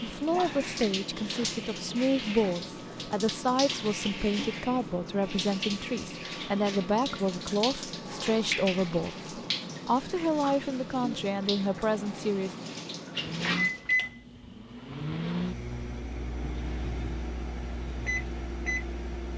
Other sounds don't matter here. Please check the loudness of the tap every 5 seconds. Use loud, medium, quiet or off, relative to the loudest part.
loud, loud, loud, off.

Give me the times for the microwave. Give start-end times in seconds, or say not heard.
13.2-19.3.